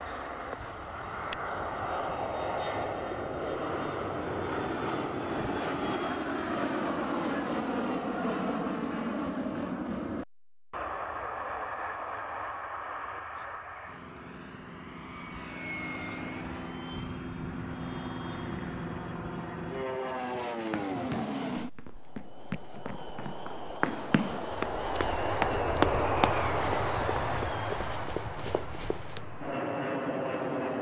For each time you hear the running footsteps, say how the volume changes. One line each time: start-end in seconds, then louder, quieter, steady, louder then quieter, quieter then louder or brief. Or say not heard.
20.6-29.2 louder then quieter.